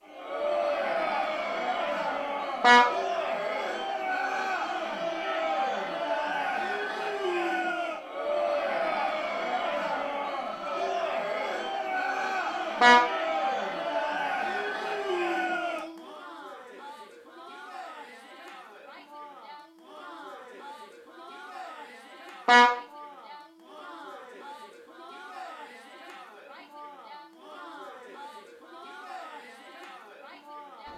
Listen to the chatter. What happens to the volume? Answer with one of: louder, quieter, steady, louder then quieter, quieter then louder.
quieter.